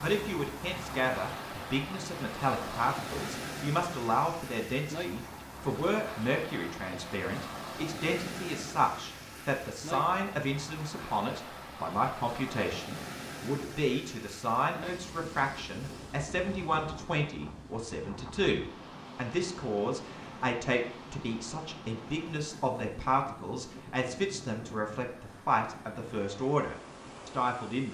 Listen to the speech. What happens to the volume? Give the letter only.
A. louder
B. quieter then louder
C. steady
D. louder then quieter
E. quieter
C.